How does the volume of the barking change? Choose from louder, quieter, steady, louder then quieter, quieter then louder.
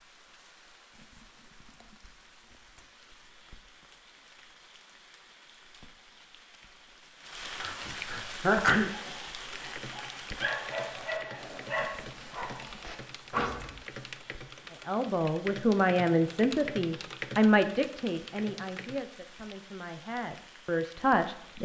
louder then quieter.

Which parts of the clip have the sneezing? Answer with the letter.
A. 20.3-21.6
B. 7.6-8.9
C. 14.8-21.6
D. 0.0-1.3
B.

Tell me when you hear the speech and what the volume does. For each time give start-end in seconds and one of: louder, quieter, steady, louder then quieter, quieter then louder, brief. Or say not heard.
14.8-21.6 quieter then louder.